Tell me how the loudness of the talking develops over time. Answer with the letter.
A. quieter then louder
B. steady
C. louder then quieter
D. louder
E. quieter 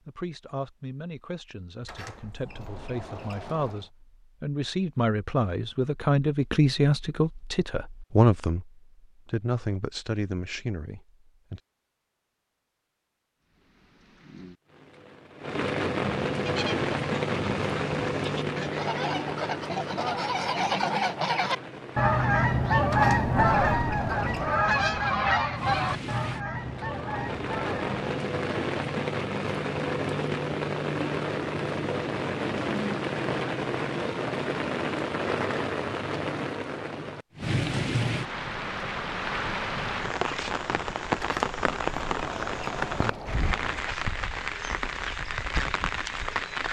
C.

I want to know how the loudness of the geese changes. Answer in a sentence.
The loudness of the geese goes up, then down.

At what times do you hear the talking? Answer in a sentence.
You can hear the talking from 0.1 to 11.6 s.